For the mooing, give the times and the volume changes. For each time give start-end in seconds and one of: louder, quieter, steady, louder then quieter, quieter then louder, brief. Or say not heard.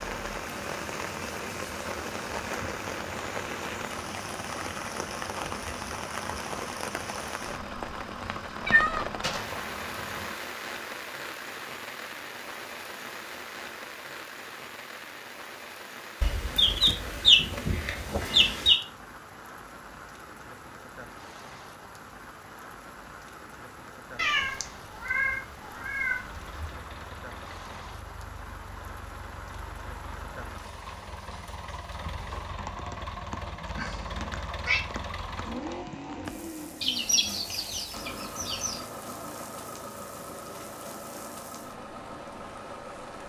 not heard.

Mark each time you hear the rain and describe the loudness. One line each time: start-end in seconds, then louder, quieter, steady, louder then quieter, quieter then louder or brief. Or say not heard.
0.0-43.2 quieter.